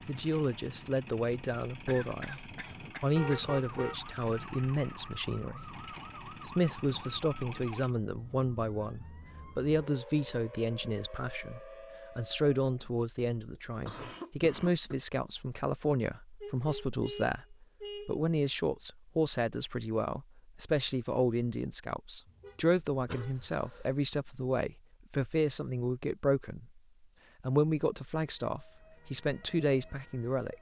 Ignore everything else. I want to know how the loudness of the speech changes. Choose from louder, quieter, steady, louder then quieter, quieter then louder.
steady.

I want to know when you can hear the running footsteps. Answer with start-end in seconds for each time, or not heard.
not heard.